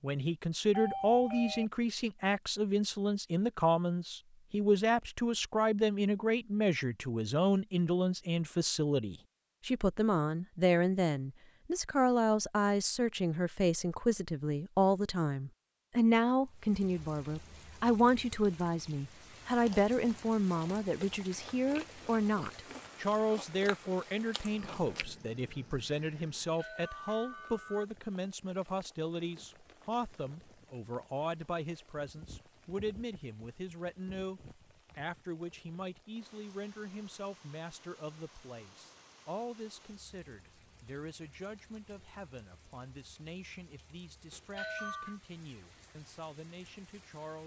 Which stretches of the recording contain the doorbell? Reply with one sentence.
The doorbell can be heard from 0.7 to 1.6 s, from 26.4 to 27.9 s and from 44.3 to 45.2 s.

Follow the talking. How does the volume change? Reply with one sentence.
The volume of the talking goes down.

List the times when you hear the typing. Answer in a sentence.
You can't hear the typing here.